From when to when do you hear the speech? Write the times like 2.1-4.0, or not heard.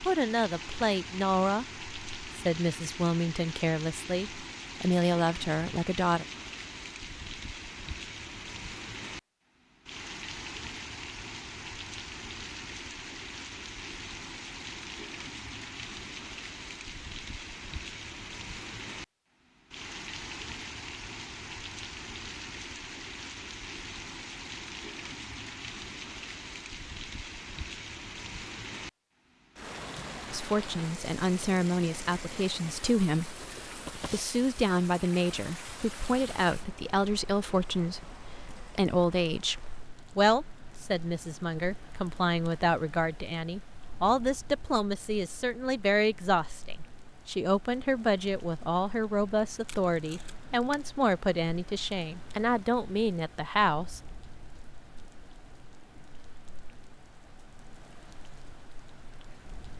0.0-6.2, 30.3-54.0.